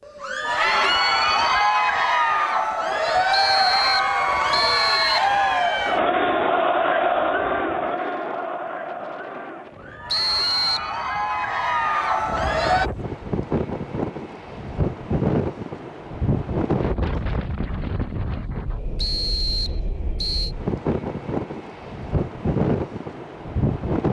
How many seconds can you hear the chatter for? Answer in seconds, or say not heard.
13 s.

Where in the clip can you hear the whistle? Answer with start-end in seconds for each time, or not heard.
3.3-5.2, 10.1-10.9, 18.9-20.6.